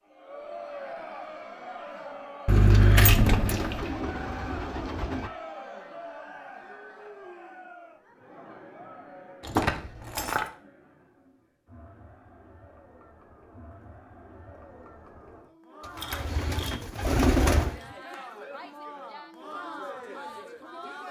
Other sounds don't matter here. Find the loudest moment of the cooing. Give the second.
17 s.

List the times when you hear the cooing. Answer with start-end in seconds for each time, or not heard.
3.2-5.3, 15.8-17.8.